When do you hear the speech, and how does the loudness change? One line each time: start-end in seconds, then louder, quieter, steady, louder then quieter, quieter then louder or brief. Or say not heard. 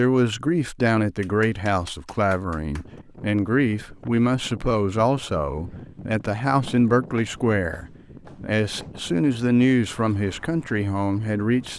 0.0-11.7 steady.